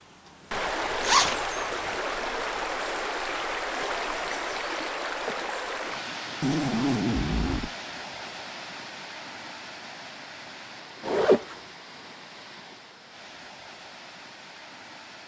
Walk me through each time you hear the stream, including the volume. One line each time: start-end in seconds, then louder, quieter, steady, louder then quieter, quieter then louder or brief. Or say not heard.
0.0-15.2 quieter.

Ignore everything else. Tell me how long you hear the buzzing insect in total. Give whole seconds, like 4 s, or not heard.
not heard.